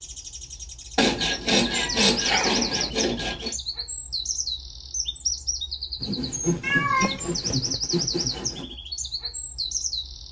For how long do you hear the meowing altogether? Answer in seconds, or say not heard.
2 s.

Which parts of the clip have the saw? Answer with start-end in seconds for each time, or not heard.
0.9-3.5, 6.0-8.8.